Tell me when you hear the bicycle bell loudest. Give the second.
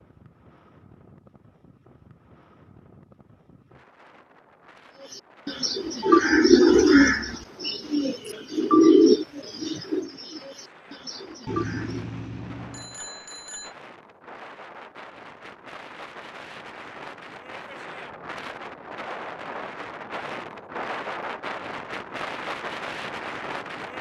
12 s.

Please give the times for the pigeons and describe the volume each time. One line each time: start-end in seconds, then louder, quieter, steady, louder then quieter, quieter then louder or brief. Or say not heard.
5.1-12.1 quieter.